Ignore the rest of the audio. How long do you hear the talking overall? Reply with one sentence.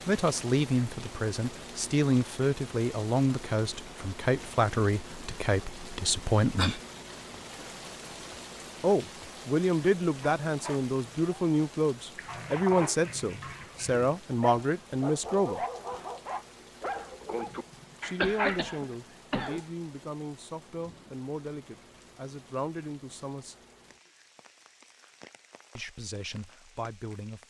You can hear the talking for 21 seconds altogether.